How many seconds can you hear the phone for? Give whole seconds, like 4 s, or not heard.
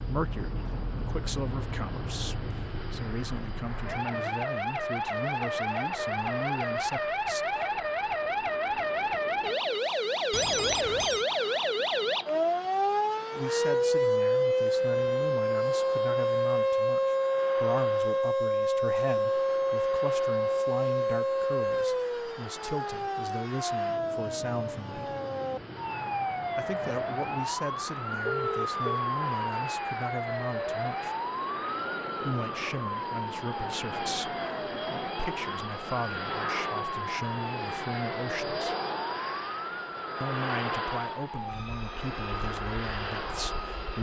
2 s.